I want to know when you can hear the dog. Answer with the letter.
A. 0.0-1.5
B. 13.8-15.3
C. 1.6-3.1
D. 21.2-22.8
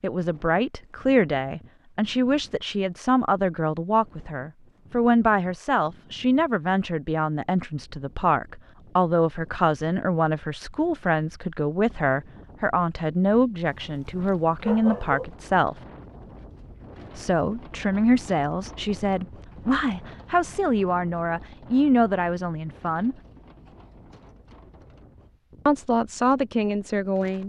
B.